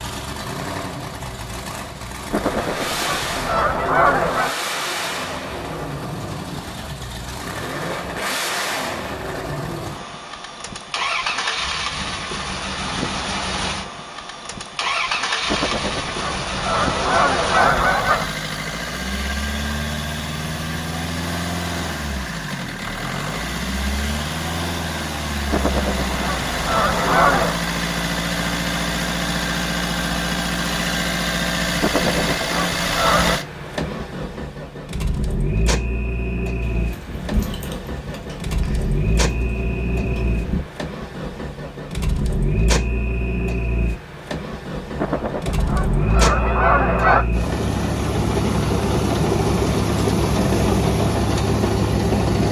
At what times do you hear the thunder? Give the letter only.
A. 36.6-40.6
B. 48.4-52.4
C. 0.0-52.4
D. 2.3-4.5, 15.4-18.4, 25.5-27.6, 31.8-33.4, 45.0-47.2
A.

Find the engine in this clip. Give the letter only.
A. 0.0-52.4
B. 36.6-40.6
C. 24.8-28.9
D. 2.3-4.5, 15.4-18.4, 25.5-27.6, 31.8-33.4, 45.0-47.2
A.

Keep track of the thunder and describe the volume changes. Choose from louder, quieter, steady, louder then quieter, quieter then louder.
quieter then louder.